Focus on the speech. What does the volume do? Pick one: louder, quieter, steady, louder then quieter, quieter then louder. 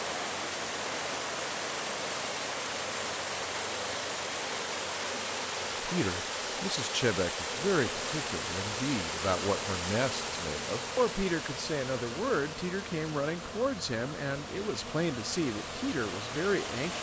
steady.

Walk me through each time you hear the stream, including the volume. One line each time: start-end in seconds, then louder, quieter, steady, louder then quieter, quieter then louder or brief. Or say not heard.
0.0-16.9 quieter.